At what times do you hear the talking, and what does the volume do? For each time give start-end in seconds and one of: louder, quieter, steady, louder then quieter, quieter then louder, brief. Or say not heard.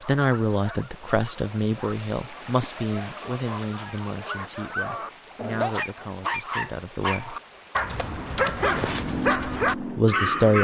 0.1-7.3 quieter
9.2-10.6 brief.